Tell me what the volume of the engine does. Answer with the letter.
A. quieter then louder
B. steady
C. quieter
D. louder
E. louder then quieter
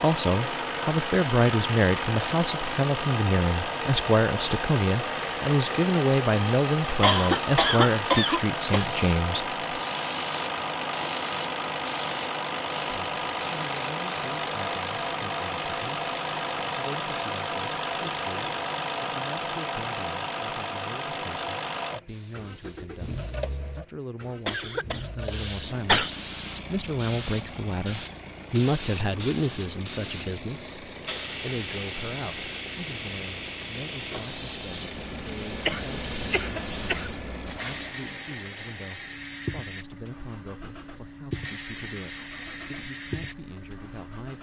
C.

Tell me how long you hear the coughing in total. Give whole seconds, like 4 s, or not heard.
5 s.